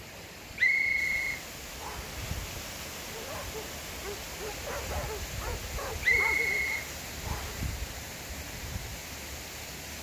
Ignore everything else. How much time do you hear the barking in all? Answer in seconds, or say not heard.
4 s.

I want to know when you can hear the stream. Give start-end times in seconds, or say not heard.
0.0-9.9.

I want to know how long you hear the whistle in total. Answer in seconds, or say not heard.
3 s.